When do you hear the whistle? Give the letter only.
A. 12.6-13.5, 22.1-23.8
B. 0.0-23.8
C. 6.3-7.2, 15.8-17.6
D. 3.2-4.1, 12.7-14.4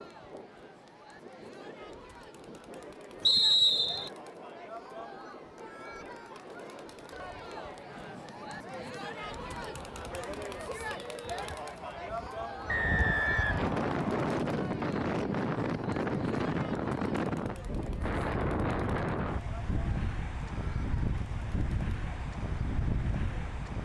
D.